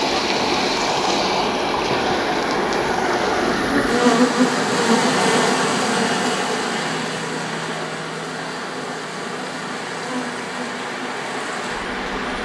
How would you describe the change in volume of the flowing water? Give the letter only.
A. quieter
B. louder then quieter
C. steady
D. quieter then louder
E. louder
A.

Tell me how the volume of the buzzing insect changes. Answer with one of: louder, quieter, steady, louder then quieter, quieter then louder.
louder then quieter.